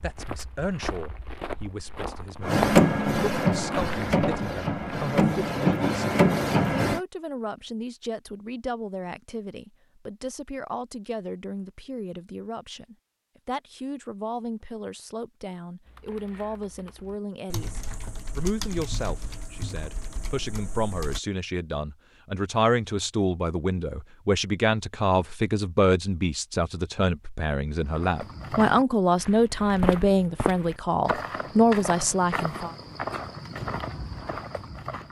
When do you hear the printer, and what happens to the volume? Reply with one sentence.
The printer can be heard from 2.4 to 7.0 s, getting quieter then louder.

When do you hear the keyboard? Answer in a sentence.
The keyboard can be heard from 15.8 to 21.2 s.